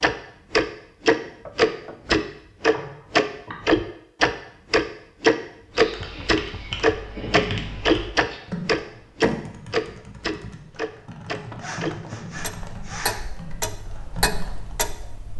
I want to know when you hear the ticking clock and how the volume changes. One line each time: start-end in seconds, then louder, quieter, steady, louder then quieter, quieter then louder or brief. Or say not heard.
0.0-15.3 quieter.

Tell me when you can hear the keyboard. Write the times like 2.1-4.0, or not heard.
5.8-14.8.